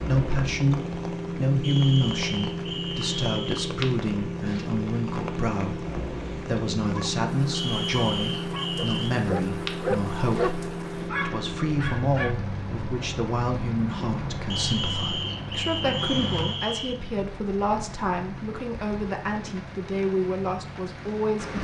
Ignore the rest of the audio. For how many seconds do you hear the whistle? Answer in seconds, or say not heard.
6 s.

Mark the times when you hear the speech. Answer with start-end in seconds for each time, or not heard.
0.0-21.5.